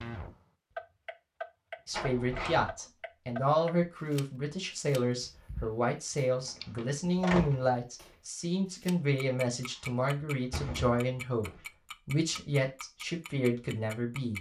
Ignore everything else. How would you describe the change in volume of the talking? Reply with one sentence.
The loudness of the talking stays about the same.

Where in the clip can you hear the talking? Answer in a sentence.
You can hear the talking from 1.9 to 14.3 s.